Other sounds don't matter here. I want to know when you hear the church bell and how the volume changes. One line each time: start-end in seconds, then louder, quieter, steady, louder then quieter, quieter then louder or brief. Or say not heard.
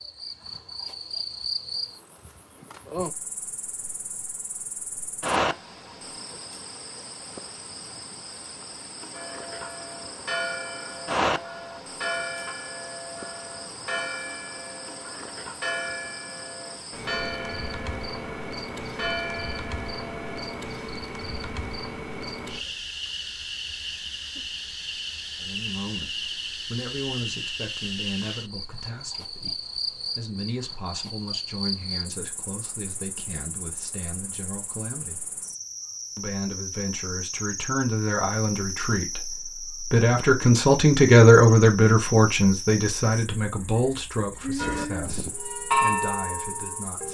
9.1-20.6 steady
44.5-47.0 brief.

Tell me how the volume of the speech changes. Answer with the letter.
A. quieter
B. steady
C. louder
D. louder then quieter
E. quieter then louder
D.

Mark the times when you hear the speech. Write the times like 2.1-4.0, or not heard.
25.4-35.2, 36.1-47.0.